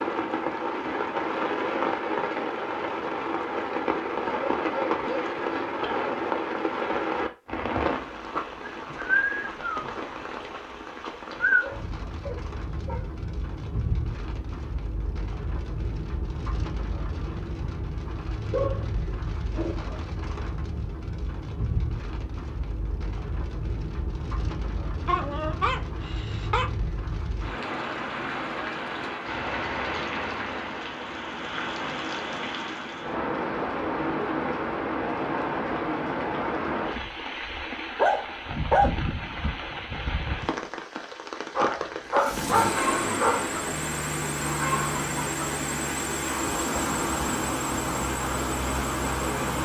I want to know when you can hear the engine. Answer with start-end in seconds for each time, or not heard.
42.0-49.6.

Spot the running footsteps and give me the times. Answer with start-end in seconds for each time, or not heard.
not heard.